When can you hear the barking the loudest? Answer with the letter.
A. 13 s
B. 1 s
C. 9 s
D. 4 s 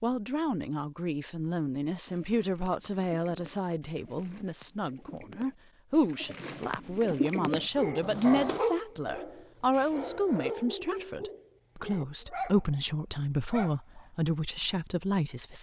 C.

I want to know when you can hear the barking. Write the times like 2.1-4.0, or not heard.
7.8-12.8, 13.5-14.1.